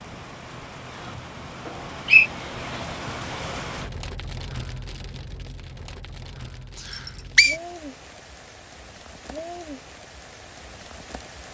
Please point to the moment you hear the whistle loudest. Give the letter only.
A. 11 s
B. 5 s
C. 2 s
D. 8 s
C.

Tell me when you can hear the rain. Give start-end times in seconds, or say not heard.
0.0-11.4.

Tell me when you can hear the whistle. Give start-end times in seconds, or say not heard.
1.6-2.3, 6.8-7.5.